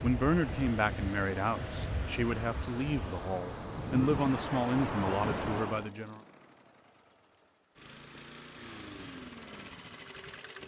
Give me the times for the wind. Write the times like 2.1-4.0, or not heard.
0.0-5.9.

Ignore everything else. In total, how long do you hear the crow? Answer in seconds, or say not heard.
not heard.